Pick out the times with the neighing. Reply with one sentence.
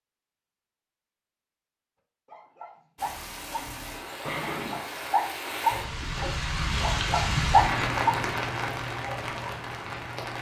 You can hear the neighing from 4.2 to 4.8 s.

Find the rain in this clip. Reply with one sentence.
You can hear the rain from 3.0 to 10.3 s.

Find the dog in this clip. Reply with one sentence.
The dog can be heard from 2.2 to 9.6 s.